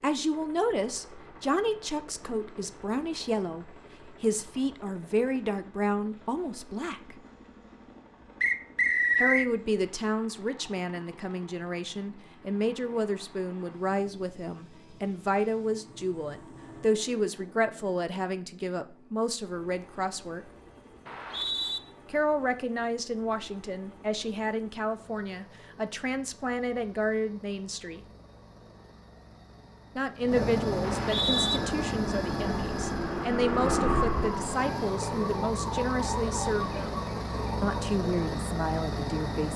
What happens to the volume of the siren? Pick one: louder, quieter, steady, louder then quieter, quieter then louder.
louder then quieter.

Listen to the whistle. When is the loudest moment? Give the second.
9 s.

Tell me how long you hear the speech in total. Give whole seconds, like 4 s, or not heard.
33 s.